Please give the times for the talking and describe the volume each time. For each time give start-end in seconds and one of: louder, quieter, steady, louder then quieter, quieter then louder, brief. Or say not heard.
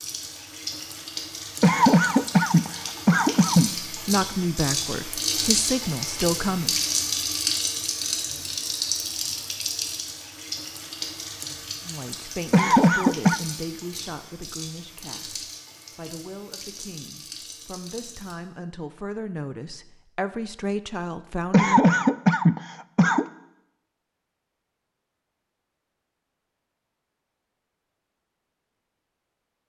3.9-6.8 brief
11.8-22.1 quieter then louder.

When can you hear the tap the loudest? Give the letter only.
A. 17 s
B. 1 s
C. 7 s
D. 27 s
C.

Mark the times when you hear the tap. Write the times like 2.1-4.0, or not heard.
0.0-18.4.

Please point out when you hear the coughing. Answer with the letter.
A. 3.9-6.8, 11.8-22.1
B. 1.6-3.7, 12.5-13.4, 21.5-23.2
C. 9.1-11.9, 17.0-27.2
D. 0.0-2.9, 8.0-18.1
B.